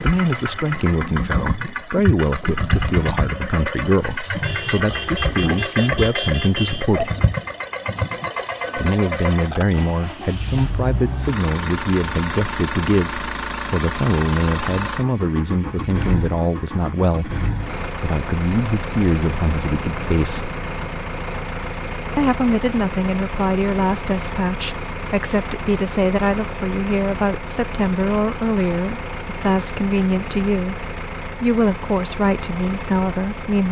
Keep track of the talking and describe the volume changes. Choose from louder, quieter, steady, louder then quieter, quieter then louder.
steady.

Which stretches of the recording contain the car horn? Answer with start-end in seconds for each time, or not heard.
4.4-6.9.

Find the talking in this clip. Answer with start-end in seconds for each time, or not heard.
0.0-7.1, 8.8-20.5, 22.1-33.6.